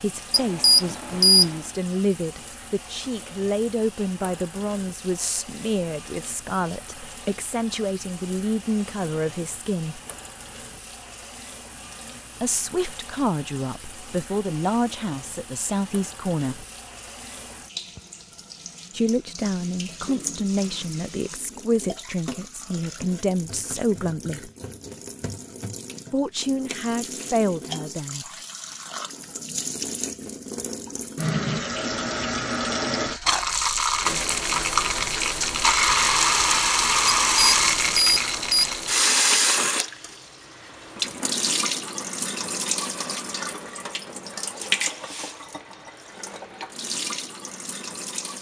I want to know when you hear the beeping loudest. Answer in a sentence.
The loudest moment of the beeping is at 1 second.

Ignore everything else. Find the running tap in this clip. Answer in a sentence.
You can hear the running tap from 0.0 to 48.3 s.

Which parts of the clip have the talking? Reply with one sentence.
The talking can be heard from 0.0 to 10.0 s, from 12.4 to 16.6 s, from 18.9 to 24.5 s and from 26.1 to 28.2 s.